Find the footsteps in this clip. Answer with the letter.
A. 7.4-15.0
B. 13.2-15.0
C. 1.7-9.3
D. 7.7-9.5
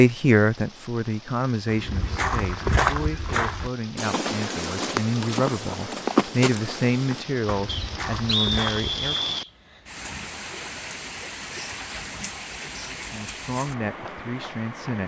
C.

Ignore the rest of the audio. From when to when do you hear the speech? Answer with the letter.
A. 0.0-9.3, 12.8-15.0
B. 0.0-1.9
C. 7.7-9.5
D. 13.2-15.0
A.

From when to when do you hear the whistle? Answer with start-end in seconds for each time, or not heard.
7.7-9.5.